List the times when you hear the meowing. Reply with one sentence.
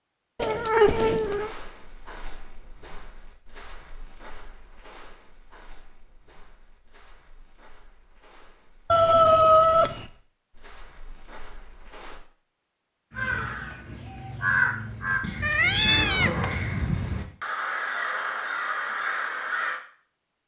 You can hear the meowing from 0.4 to 1.5 s, from 8.9 to 10.1 s and from 15.4 to 16.6 s.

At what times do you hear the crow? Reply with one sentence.
You can hear the crow from 13.1 to 19.8 s.